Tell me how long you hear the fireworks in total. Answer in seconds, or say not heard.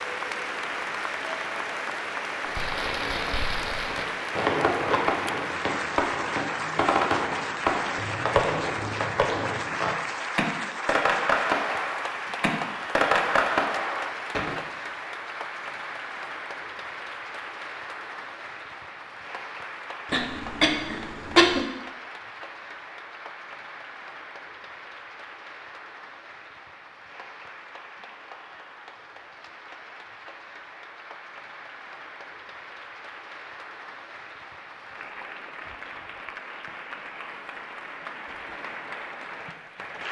12 s.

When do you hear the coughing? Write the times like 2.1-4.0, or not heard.
20.1-21.6.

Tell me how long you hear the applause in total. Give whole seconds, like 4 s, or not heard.
40 s.